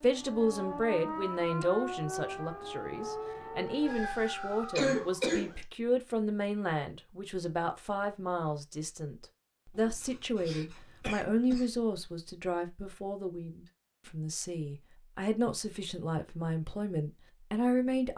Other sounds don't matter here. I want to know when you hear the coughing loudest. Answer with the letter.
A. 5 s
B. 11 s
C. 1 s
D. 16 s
A.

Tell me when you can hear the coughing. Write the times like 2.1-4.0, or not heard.
4.8-5.5, 9.8-11.7.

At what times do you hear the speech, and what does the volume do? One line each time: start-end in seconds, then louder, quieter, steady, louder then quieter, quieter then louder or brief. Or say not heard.
0.0-18.1 steady.